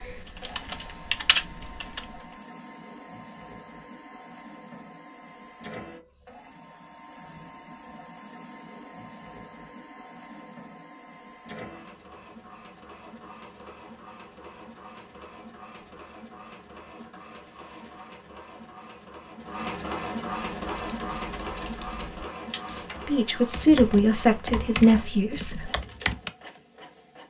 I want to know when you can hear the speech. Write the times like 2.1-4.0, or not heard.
23.1-25.7.